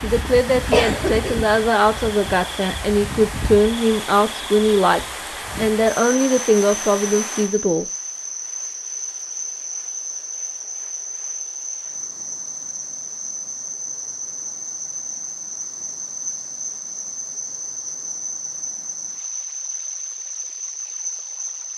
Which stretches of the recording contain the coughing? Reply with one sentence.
The coughing can be heard from 0.7 to 1.7 s.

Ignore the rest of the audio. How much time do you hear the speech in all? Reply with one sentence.
You can hear the speech for 8 seconds altogether.